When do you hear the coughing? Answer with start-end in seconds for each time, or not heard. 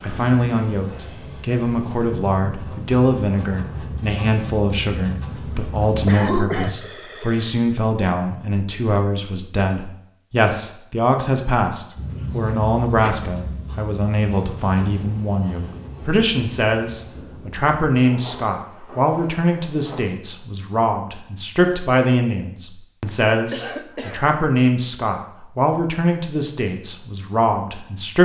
5.5-7.5, 12.1-13.2, 23.1-24.2.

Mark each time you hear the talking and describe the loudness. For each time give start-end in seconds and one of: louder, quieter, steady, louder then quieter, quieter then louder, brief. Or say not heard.
0.0-28.1 steady.